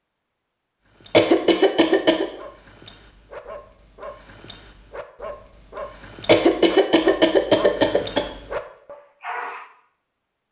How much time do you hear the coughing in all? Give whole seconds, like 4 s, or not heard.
3 s.